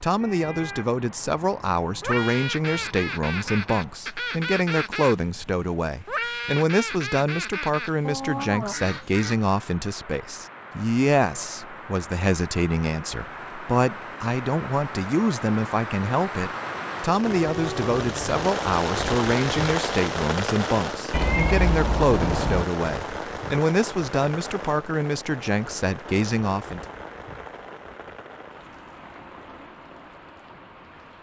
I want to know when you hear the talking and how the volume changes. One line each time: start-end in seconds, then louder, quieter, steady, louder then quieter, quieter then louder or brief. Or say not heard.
0.0-26.8 steady.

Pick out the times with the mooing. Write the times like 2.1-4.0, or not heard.
not heard.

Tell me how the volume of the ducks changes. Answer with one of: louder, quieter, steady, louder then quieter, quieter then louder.
steady.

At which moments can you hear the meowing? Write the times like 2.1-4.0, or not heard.
0.2-0.8, 17.2-18.4, 21.1-22.6.